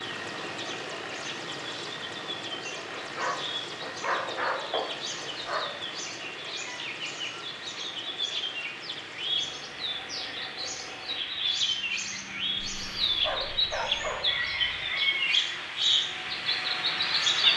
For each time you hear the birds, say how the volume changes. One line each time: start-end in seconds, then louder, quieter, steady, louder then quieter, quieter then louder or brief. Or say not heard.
0.0-17.5 louder.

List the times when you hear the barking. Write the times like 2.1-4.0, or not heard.
2.9-5.7, 12.6-14.2.